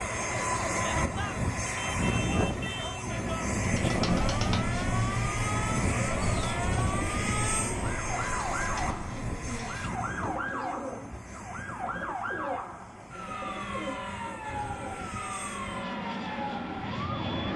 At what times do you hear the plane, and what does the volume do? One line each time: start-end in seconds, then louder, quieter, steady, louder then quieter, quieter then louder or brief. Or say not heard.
0.0-17.5 quieter then louder.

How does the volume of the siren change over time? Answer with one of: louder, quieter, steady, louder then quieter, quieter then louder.
steady.